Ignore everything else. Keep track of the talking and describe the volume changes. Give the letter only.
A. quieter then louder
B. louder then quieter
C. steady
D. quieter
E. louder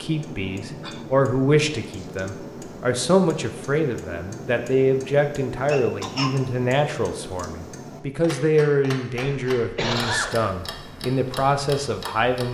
C.